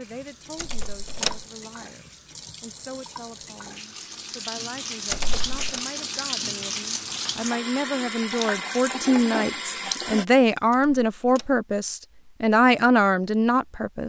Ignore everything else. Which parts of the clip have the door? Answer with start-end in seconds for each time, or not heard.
0.6-1.4, 5.1-5.8, 10.7-11.5.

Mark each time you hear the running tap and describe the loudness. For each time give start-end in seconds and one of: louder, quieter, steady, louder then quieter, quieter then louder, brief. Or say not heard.
0.0-10.2 louder.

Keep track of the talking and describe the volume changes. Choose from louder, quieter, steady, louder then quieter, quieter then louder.
louder.